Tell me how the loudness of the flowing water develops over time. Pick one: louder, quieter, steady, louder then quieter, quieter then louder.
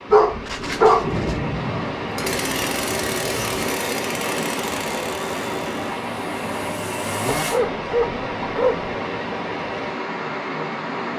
steady.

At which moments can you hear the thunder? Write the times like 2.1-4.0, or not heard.
1.0-3.6.